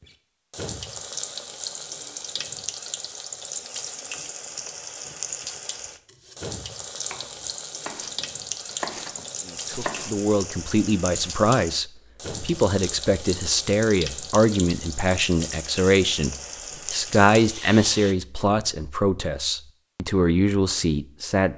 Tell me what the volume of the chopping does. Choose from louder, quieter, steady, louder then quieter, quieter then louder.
louder then quieter.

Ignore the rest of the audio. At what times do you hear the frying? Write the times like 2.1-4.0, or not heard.
0.0-18.1.